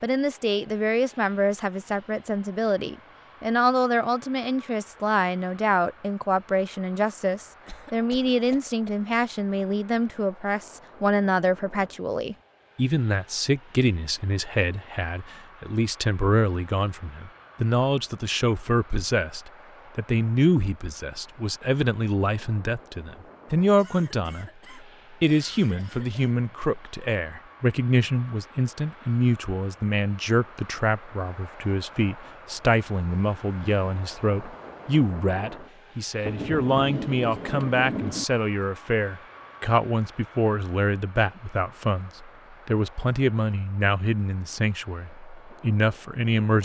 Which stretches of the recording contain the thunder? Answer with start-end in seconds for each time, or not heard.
36.2-38.2.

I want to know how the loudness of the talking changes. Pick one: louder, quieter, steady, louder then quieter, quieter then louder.
steady.